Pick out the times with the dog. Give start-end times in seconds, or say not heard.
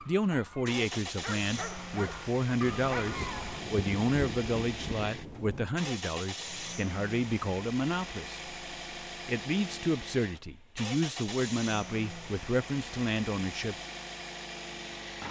0.0-3.6.